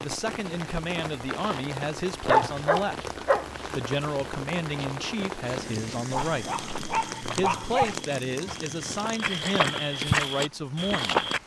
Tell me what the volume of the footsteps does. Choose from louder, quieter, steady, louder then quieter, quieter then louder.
louder.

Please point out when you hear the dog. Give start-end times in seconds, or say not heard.
2.2-3.5, 6.1-8.0.